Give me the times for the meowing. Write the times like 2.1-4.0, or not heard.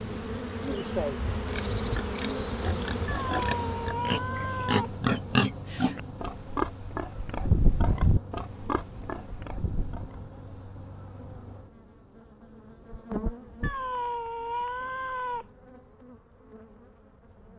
3.0-5.0, 13.6-15.4.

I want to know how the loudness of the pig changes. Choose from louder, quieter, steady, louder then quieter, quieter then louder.
louder then quieter.